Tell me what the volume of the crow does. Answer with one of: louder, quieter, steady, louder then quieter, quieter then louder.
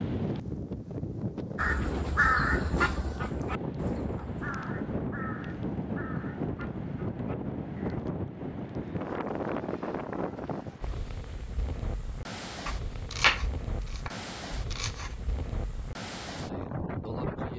quieter.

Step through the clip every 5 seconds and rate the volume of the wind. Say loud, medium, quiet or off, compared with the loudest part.
loud, loud, medium, loud.